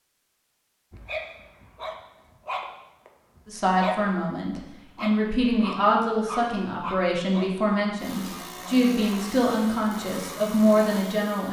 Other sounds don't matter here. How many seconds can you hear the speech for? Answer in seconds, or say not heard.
8 s.